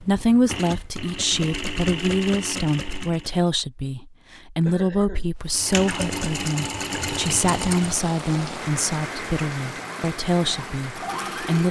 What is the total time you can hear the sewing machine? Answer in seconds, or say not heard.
8 s.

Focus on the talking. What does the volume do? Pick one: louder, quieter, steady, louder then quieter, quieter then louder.
steady.